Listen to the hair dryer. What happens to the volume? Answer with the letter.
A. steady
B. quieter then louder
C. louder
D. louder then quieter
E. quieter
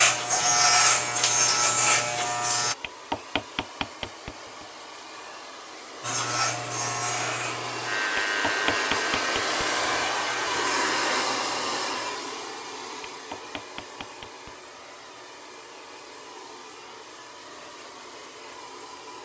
D.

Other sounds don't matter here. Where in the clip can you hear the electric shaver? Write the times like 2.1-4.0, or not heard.
0.0-2.8, 6.0-11.2.